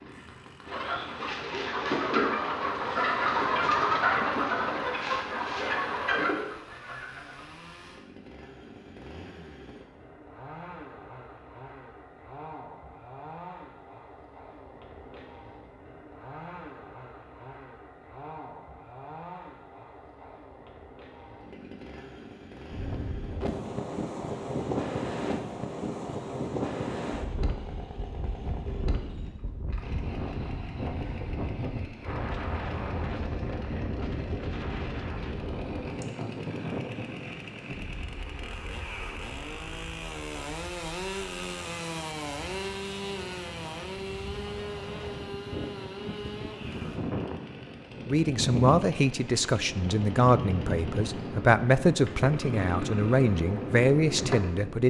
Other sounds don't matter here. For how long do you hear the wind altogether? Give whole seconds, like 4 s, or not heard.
32 s.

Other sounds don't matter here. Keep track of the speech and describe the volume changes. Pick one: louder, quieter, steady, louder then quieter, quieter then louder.
steady.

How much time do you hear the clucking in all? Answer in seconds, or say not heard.
7 s.